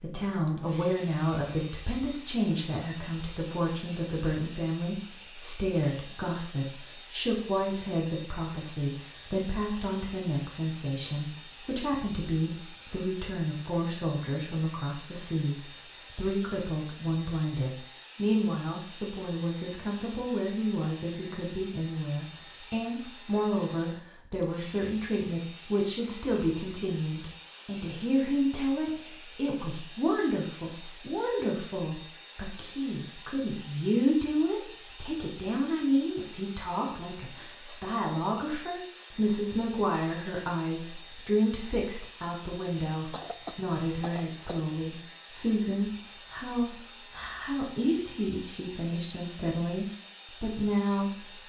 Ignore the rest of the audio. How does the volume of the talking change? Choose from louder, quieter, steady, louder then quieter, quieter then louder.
steady.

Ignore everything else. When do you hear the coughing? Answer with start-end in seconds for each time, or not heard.
43.1-44.8.